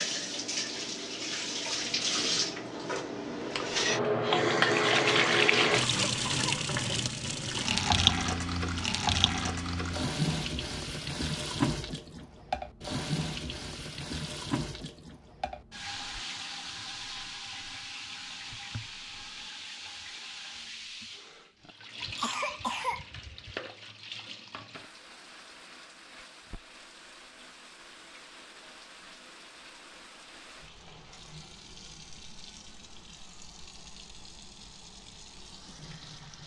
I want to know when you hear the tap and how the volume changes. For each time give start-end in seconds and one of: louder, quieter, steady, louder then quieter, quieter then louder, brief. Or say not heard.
0.0-36.4 quieter.